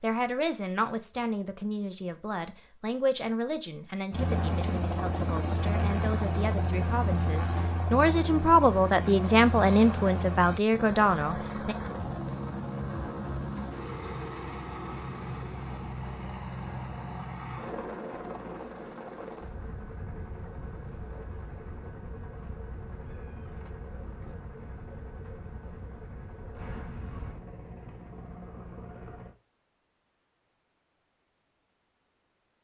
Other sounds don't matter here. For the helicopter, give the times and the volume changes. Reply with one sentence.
The helicopter can be heard from 4.1 to 29.4 s, getting quieter.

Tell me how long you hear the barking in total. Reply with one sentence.
The barking can't be heard in this clip.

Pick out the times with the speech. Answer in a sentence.
You can hear the speech from 0.0 to 11.8 s.